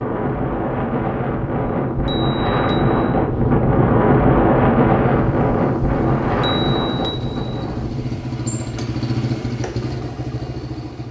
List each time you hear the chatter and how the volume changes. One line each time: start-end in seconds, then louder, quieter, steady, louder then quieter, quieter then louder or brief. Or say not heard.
not heard.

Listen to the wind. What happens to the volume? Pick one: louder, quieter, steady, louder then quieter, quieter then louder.
louder then quieter.